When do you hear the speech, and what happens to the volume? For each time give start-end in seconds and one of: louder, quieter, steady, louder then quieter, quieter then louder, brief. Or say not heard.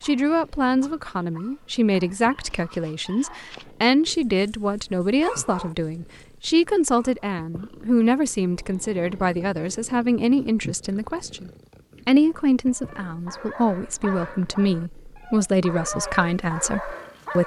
0.0-17.4 steady.